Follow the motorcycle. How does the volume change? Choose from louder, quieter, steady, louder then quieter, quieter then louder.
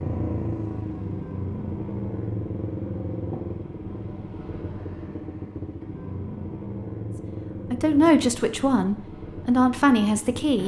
quieter.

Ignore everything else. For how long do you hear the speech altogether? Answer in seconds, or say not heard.
3 s.